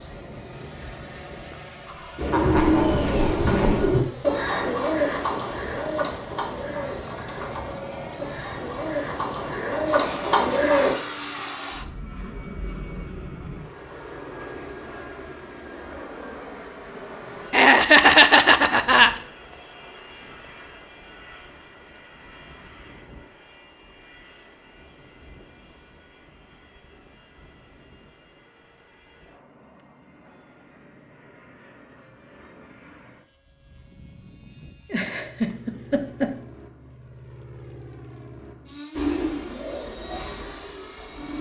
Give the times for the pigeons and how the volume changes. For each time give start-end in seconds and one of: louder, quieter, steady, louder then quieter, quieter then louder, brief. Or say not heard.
2.1-10.9 quieter then louder
39.0-41.3 brief.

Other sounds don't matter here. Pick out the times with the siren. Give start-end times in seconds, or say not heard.
not heard.